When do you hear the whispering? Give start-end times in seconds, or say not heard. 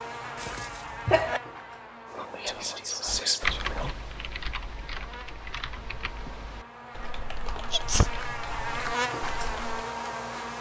2.1-4.1.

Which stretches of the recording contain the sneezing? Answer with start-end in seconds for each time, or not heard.
0.3-1.4, 7.7-8.1.